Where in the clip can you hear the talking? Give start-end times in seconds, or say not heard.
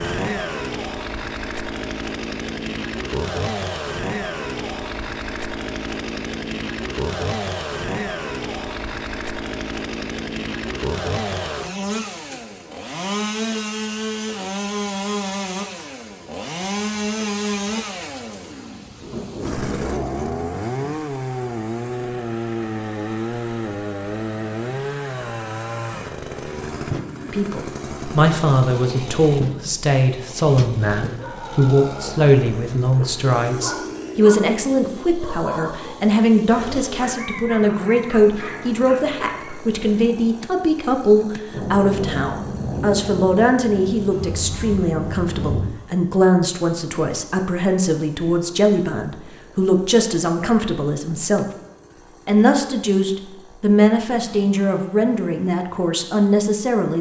27.3-51.5, 52.2-56.9.